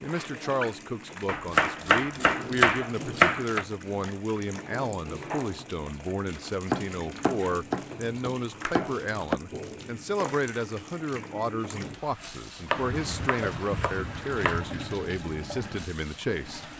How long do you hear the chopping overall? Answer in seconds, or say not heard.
7 s.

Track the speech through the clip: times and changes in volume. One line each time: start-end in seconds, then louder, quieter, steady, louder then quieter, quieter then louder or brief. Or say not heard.
0.0-16.7 steady.